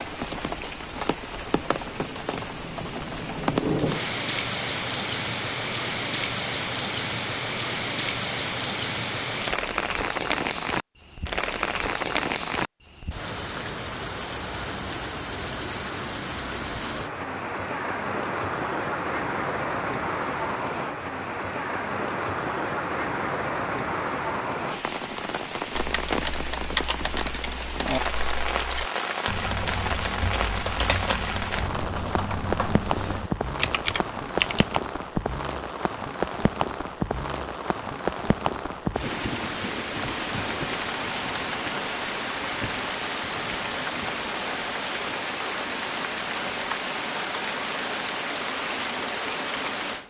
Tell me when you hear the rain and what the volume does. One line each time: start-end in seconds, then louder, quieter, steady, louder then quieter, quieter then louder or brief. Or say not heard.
0.0-50.0 steady.